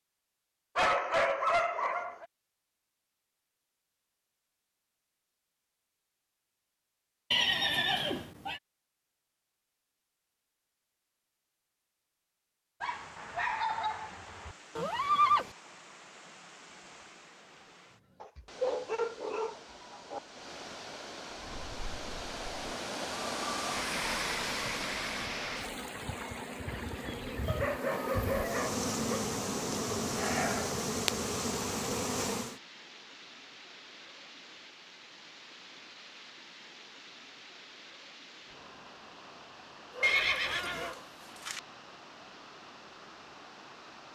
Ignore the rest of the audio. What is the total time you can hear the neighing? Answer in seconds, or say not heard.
3 s.